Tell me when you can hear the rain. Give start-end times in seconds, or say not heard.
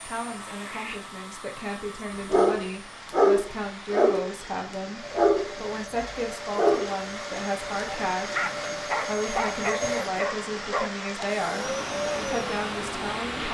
0.0-13.4.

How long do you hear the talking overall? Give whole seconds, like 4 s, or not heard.
13 s.